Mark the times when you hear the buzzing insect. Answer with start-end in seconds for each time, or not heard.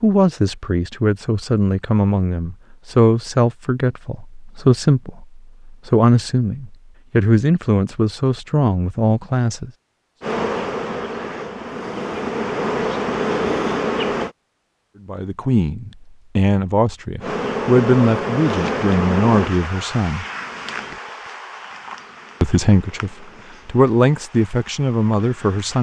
10.2-14.3, 17.2-25.7.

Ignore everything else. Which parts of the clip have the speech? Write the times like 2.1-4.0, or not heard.
0.0-9.7, 15.1-20.2, 22.4-25.7.